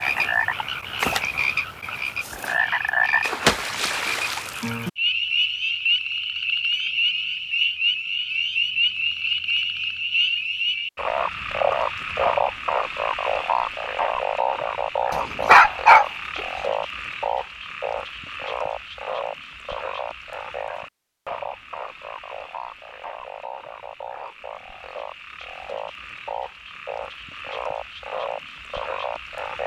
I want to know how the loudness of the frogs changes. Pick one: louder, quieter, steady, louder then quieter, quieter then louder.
quieter.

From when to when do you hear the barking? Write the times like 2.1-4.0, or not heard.
15.3-16.1.